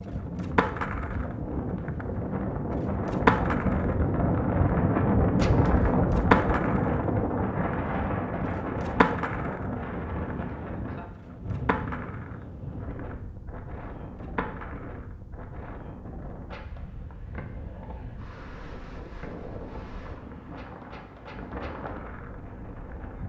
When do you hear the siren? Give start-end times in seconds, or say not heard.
not heard.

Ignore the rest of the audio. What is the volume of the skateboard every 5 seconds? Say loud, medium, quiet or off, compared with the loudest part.
loud, loud, medium, quiet, quiet.